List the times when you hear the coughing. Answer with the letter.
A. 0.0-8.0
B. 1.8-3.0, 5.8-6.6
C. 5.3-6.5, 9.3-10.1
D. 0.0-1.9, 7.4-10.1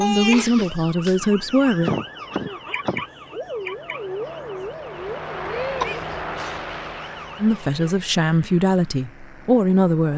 B.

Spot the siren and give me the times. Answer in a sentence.
You can hear the siren from 0.0 to 8.0 s.